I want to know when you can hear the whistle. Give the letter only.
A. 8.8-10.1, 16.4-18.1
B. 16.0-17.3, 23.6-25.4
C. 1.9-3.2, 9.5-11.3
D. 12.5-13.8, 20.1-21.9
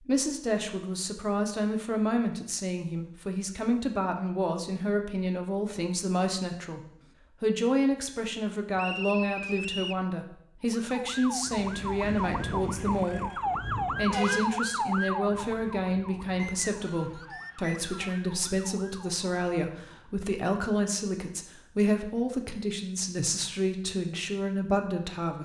A.